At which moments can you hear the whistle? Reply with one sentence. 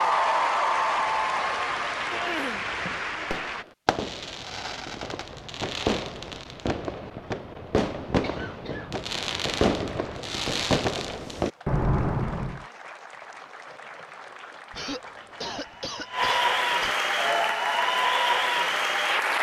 The whistle can't be heard in this clip.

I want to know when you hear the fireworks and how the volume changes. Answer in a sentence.
The fireworks can be heard from 2.6 to 12.6 s, getting louder.